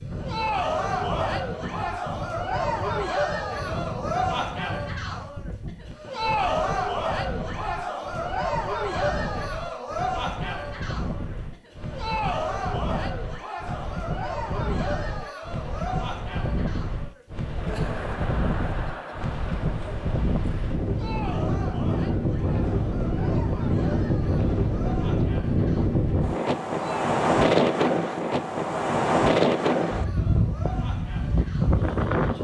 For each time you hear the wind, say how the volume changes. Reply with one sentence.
You can hear the wind from 0.0 to 32.3 s, getting louder.